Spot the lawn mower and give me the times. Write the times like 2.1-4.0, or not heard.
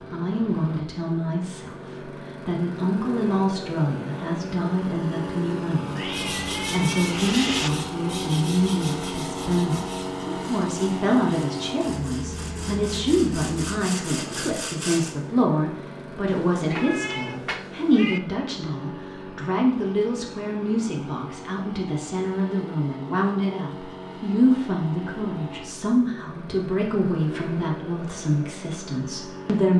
0.0-29.7.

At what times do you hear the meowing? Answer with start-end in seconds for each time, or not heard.
6.0-7.7, 16.2-18.2.